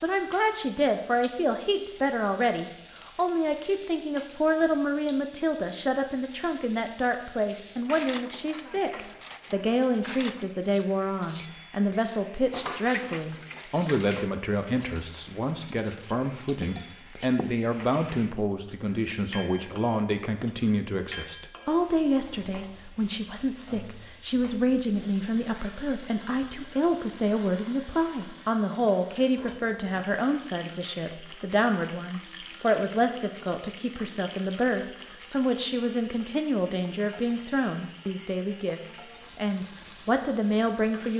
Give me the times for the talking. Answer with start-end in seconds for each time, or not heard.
0.0-41.1.